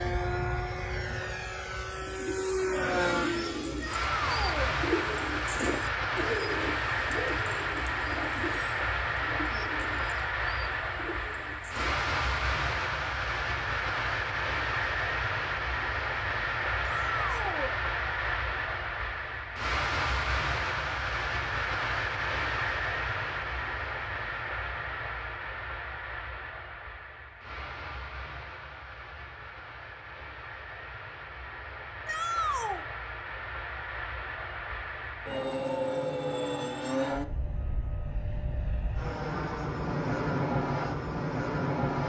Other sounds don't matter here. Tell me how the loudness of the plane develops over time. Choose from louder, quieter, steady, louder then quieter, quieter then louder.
quieter then louder.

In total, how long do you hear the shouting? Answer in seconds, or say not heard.
3 s.